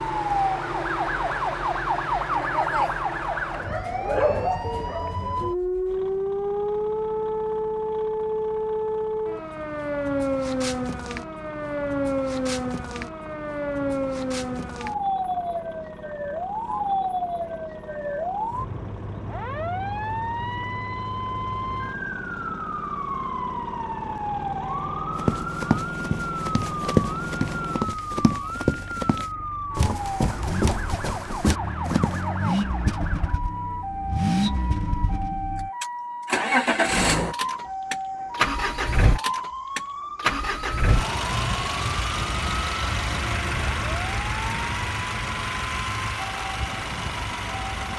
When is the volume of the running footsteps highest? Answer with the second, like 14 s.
27 s.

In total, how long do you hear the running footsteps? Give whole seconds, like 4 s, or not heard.
7 s.